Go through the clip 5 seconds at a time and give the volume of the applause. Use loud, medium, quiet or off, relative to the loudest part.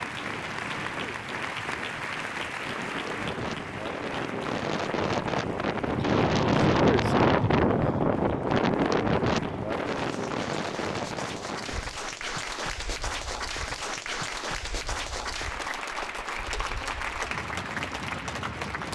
loud, quiet, loud, loud.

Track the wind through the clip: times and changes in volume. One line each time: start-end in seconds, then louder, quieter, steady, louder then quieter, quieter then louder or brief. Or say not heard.
0.0-18.9 louder then quieter.